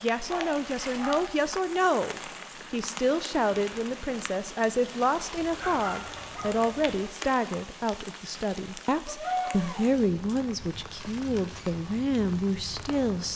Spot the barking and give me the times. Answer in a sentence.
You can hear the barking from 0.2 to 1.4 s, from 5.3 to 7.1 s and from 9.1 to 9.9 s.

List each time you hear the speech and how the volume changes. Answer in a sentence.
You can hear the speech from 0.0 to 13.3 s, at a steady volume.